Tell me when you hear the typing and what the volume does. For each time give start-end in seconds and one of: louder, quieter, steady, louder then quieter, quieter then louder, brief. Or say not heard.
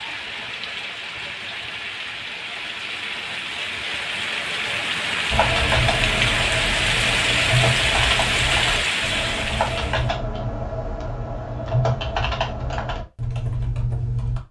5.3-14.4 steady.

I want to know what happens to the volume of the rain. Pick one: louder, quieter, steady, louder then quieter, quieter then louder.
louder.